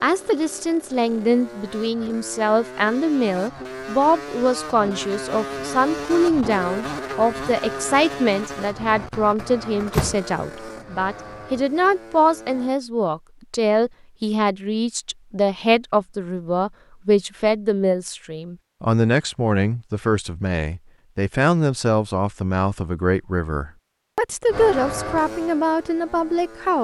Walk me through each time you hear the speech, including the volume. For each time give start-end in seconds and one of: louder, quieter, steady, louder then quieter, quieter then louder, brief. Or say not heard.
0.0-26.7 steady.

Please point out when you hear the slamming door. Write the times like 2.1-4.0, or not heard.
9.4-10.2.